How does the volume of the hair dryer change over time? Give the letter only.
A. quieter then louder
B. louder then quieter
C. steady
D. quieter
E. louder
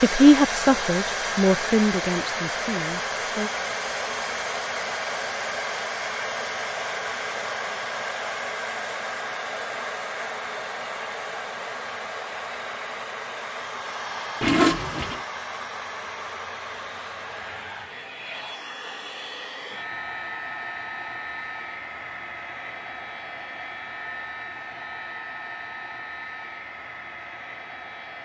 D.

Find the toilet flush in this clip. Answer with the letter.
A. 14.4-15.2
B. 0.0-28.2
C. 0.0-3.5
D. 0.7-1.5
A.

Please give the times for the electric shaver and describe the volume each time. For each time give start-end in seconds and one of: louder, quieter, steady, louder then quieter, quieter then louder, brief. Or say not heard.
not heard.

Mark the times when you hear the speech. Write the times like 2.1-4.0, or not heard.
0.0-3.5.